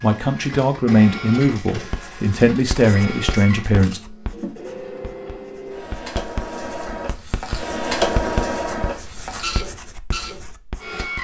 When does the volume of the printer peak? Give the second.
8 s.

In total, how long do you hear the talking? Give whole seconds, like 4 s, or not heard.
4 s.